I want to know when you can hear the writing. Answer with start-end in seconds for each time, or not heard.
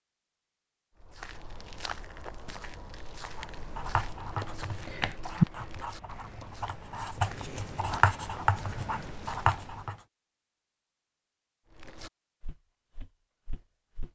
3.4-9.9.